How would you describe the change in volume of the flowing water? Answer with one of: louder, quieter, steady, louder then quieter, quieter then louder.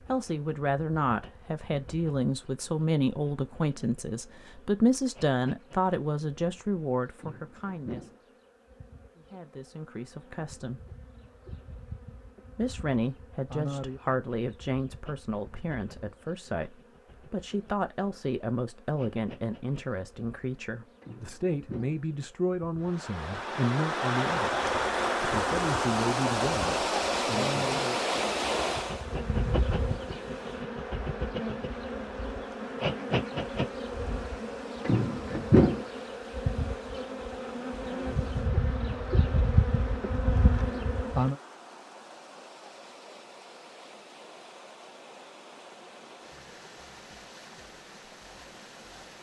quieter.